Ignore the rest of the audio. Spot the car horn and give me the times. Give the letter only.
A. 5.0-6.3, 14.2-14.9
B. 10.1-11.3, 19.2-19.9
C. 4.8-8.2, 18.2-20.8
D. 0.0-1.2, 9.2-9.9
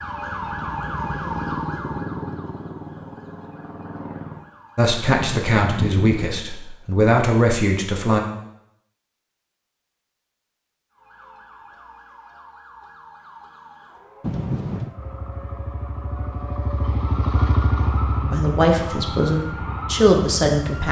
A.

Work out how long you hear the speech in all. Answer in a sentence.
The speech can be heard for 6 seconds in total.